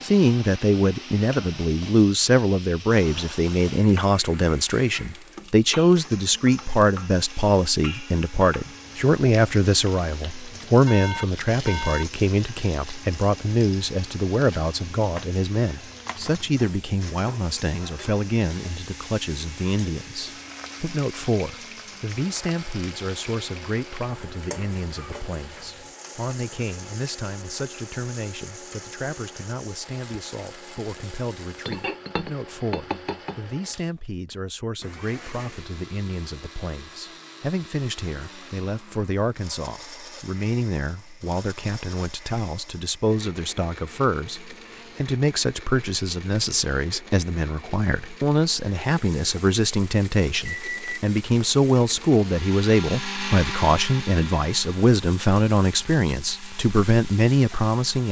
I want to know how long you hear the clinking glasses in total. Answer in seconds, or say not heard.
2 s.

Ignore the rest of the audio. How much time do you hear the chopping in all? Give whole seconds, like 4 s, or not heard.
not heard.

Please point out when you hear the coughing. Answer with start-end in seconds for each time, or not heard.
not heard.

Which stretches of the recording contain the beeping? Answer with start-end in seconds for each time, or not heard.
10.8-12.1, 50.5-51.0.